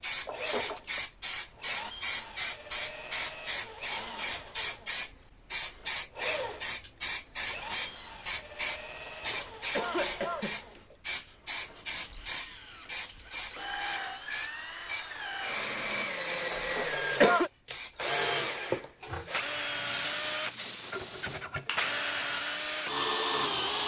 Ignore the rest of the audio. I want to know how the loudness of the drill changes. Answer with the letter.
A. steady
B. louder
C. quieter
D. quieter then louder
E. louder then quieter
B.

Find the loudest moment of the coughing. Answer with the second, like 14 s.
17 s.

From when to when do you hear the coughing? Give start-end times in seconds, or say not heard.
0.2-1.0, 9.3-10.9, 16.5-17.5.